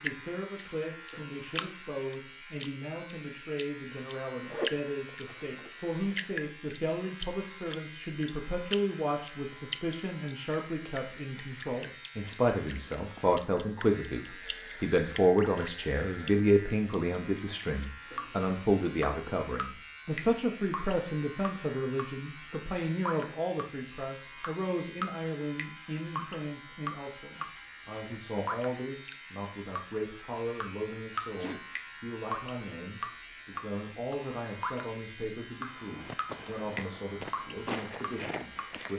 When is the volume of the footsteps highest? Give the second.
38 s.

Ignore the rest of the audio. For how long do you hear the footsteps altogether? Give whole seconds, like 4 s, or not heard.
3 s.